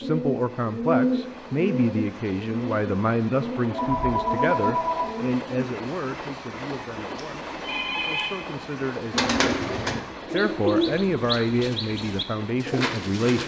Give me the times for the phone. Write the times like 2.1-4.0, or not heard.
3.7-5.0, 7.2-8.3.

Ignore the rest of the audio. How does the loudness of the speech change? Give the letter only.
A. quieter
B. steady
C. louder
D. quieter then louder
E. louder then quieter
D.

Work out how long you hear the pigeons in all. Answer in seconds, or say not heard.
10 s.